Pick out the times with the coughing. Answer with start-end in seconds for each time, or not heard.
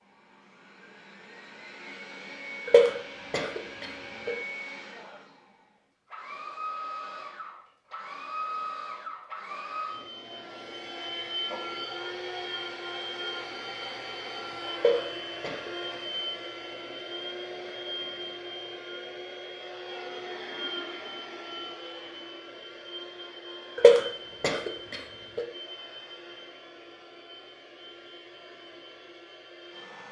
2.6-4.3, 14.8-15.7, 23.8-25.4.